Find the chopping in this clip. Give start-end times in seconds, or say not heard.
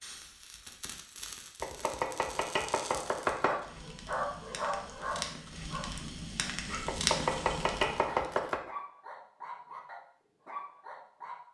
1.6-3.6, 6.8-8.7.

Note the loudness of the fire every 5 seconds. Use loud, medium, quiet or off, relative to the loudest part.
medium, loud, off.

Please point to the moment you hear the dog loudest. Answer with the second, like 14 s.
4 s.